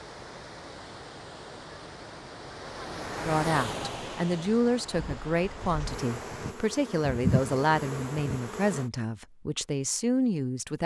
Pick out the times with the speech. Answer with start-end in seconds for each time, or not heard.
3.2-10.8.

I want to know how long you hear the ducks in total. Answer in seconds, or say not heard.
not heard.